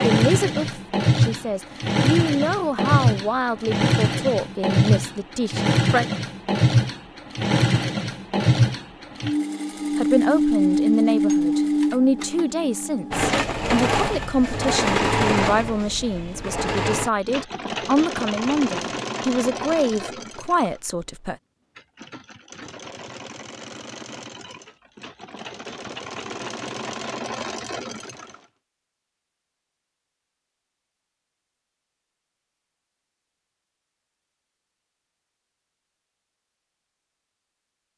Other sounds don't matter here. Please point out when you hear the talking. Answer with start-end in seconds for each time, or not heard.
0.0-6.0, 9.9-21.4.